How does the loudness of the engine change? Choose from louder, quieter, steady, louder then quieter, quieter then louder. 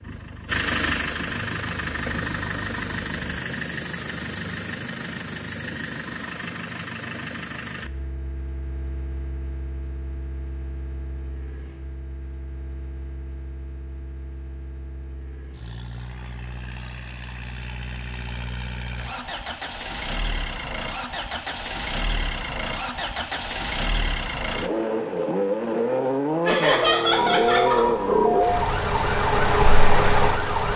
quieter then louder.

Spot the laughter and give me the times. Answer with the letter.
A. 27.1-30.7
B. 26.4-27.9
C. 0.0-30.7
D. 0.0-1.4
B.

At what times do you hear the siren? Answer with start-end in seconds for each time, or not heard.
27.1-30.7.